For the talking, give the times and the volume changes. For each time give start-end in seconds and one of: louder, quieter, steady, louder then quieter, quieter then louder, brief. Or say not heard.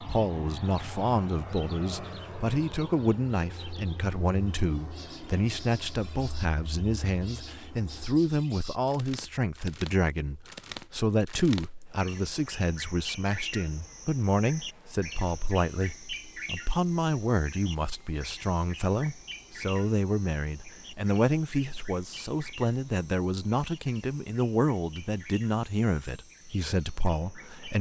0.0-27.7 steady.